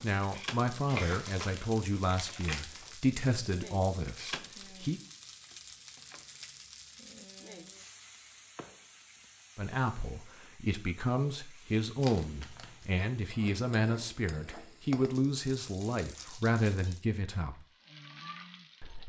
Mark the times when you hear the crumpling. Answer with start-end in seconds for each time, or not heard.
0.8-3.0, 12.0-12.8.